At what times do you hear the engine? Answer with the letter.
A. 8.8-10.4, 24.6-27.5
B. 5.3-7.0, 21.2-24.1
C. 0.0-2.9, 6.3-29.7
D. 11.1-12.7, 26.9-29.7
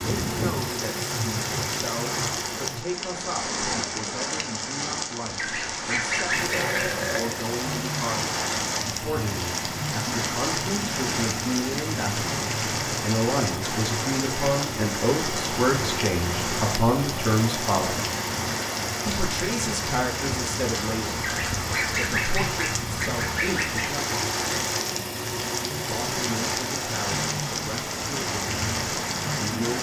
C.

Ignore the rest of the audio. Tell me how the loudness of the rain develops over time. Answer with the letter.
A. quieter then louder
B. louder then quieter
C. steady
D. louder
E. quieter
C.